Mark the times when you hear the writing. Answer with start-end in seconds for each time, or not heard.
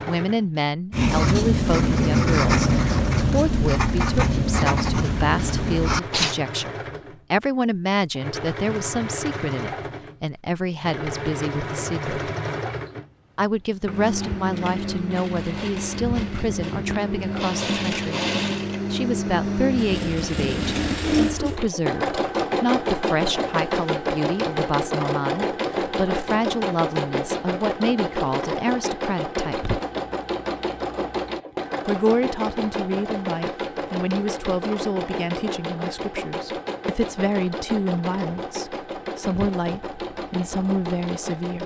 0.9-6.3.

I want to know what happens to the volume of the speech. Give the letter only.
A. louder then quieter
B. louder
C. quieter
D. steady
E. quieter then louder
D.